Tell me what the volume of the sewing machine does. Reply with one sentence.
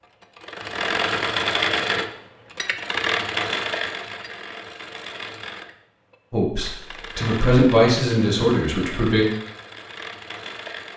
The loudness of the sewing machine goes down.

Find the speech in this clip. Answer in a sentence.
The speech can be heard from 6.3 to 9.2 s.